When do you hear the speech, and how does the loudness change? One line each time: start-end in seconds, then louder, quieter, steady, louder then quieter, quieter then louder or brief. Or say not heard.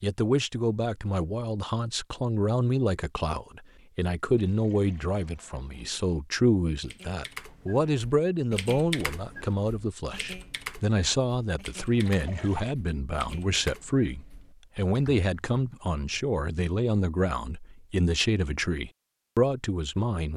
0.0-20.3 steady.